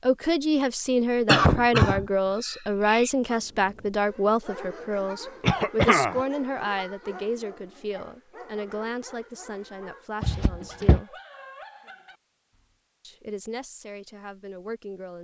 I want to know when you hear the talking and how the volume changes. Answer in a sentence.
You can hear the talking from 0.0 to 11.2 s, getting quieter; and briefly from 13.0 to 15.1 s.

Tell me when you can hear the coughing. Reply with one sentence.
You can hear the coughing from 1.2 to 3.1 s, from 5.4 to 6.2 s and from 10.2 to 11.0 s.